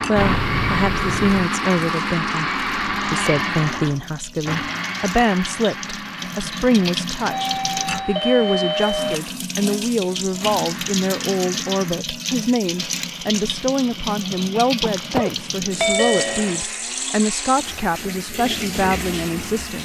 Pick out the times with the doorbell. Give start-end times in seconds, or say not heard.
0.1-1.5, 7.3-9.2, 14.8-16.6.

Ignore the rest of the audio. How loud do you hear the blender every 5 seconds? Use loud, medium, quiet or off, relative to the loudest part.
loud, medium, quiet, quiet.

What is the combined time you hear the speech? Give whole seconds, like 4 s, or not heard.
20 s.